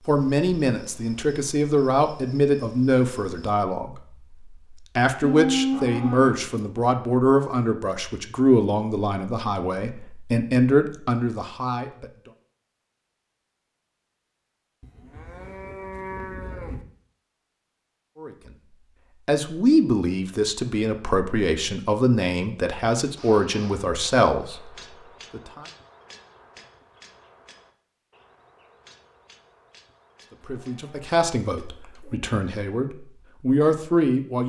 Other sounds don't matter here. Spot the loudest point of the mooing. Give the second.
6 s.